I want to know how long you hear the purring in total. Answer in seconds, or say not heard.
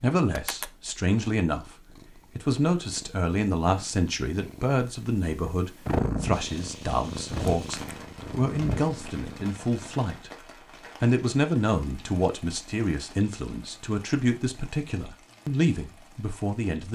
10 s.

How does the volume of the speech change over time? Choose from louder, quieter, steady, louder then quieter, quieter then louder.
steady.